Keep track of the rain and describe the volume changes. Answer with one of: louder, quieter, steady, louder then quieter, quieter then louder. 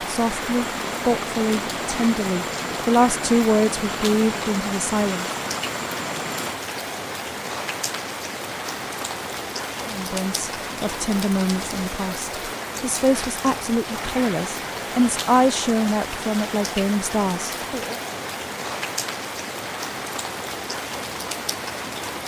steady.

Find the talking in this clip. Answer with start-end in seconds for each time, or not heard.
0.1-5.3, 9.8-17.9.